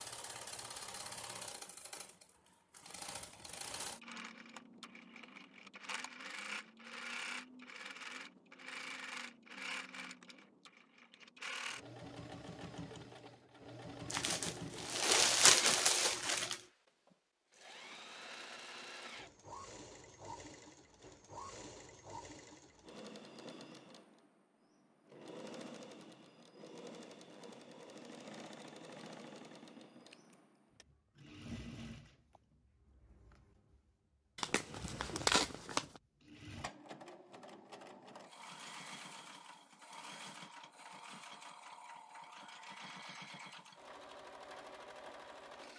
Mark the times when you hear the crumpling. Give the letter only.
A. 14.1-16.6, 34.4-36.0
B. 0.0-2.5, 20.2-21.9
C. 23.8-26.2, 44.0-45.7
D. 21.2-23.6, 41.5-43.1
A.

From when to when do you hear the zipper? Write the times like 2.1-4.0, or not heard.
not heard.